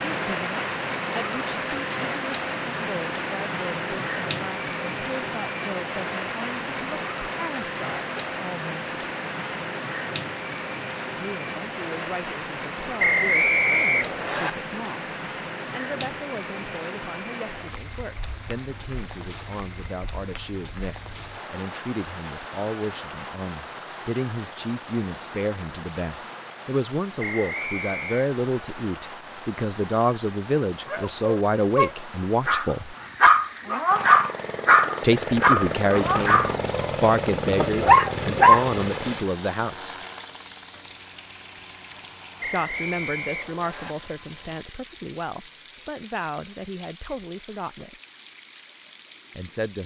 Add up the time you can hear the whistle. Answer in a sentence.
The whistle can be heard for 4 seconds in total.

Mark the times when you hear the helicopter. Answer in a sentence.
The helicopter can be heard from 33.9 to 44.6 s.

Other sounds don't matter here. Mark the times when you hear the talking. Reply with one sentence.
The talking can be heard from 0.1 to 8.9 s, from 11.2 to 33.0 s, from 35.0 to 40.0 s, from 42.5 to 48.0 s and from 49.3 to 49.8 s.